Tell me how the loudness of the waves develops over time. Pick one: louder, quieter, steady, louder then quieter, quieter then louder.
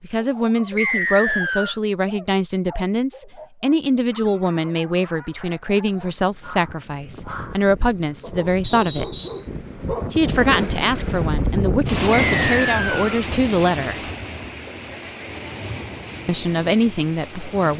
louder then quieter.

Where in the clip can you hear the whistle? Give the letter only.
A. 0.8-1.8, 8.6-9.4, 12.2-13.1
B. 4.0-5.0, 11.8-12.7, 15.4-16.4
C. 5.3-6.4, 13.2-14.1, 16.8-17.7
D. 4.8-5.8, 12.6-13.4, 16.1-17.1
A.